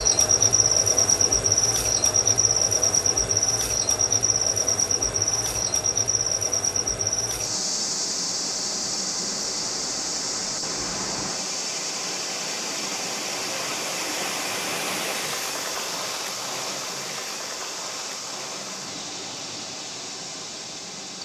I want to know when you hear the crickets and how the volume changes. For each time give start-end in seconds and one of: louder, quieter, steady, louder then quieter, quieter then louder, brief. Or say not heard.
0.0-21.1 quieter.